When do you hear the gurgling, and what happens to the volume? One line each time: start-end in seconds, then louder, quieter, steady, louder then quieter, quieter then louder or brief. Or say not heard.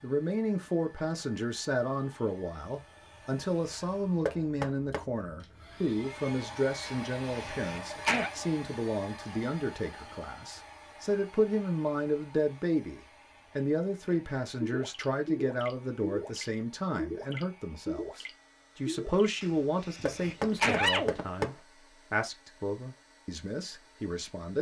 14.1-19.3 steady.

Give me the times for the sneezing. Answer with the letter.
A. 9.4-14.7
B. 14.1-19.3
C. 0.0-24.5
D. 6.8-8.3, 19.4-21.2
D.